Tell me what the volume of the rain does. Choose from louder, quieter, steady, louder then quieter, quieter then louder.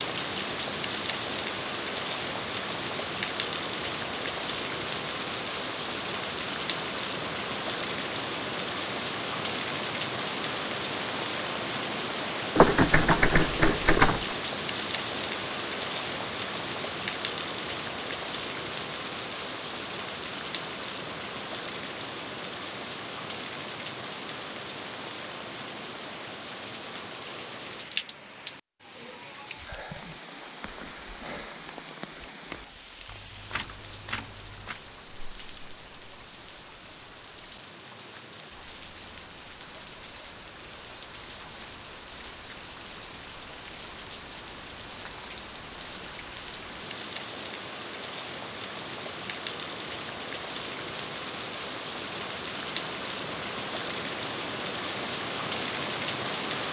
quieter then louder.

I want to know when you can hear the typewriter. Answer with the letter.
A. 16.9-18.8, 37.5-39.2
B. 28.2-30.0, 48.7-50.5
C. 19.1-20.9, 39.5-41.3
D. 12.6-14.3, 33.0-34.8
D.